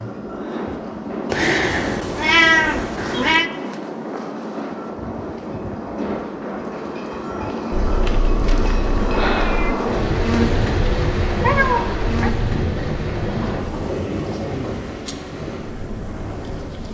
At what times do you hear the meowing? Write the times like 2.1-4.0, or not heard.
1.3-3.5, 7.7-9.8, 11.4-12.3.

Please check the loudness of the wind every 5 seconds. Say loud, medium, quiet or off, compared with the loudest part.
loud, loud, loud, medium.